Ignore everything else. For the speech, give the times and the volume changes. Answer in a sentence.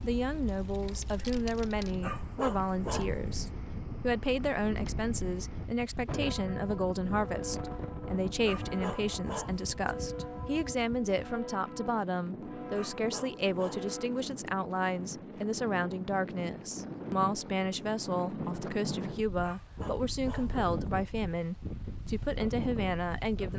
You can hear the speech from 0.0 to 23.5 s, at a steady volume.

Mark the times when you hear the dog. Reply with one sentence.
You can hear the dog from 2.0 to 3.5 s, from 8.4 to 9.9 s, from 12.7 to 14.2 s and from 19.4 to 20.6 s.